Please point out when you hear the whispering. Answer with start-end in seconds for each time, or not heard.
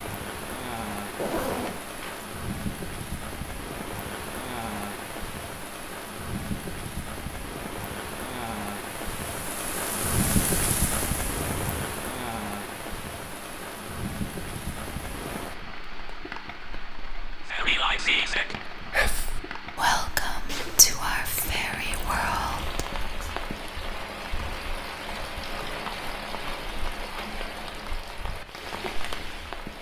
17.4-23.3.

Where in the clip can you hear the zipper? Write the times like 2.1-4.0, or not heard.
1.1-2.2, 11.3-11.9, 20.4-21.7.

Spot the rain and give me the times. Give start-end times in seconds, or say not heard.
0.0-29.7.